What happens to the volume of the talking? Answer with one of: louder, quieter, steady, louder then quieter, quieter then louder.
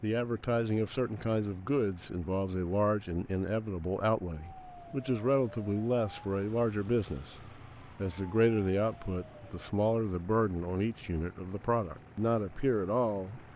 steady.